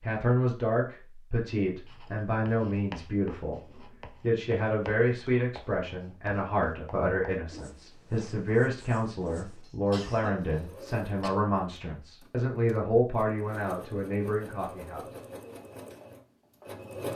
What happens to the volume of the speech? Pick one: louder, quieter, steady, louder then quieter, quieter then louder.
steady.